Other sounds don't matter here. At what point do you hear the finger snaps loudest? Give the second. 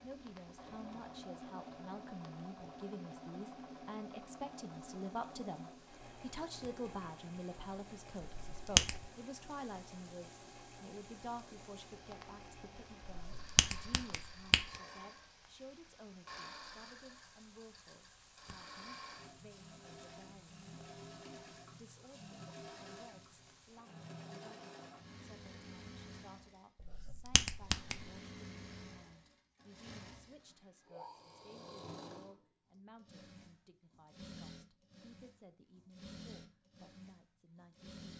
9 s.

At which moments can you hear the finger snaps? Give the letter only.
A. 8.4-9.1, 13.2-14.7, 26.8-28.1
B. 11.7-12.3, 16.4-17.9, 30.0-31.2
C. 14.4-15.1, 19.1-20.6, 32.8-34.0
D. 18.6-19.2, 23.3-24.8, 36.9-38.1
A.